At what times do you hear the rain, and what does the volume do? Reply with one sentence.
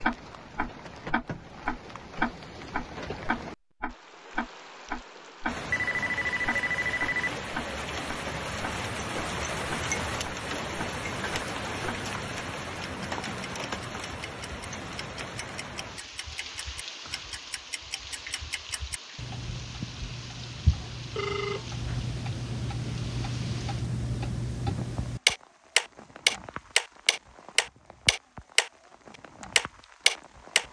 The rain can be heard from 0.0 to 30.6 s, getting louder then quieter.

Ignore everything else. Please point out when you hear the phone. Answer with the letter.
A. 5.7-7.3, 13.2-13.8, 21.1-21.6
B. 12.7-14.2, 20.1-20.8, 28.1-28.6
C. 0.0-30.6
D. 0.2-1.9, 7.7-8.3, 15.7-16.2
A.